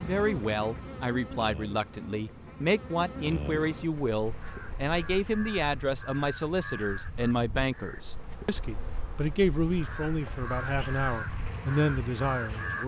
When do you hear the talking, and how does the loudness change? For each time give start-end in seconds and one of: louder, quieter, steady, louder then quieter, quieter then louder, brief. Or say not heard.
0.0-12.8 steady.